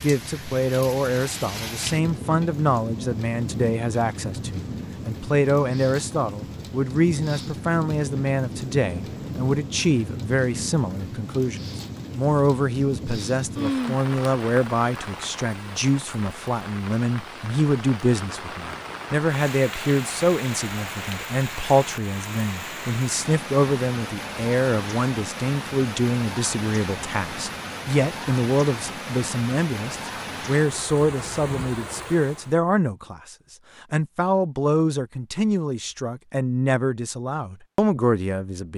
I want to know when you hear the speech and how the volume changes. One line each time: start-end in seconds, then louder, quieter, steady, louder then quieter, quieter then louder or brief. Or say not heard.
0.0-38.7 steady.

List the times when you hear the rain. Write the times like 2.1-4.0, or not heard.
0.0-32.6.